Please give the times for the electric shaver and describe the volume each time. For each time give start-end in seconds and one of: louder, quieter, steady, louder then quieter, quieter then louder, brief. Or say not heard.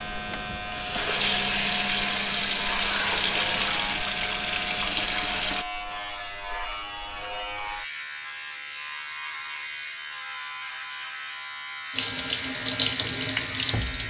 0.0-14.0 steady.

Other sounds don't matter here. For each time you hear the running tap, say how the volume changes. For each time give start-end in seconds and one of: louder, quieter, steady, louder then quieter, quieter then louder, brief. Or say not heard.
0.0-5.7 steady
11.9-14.0 brief.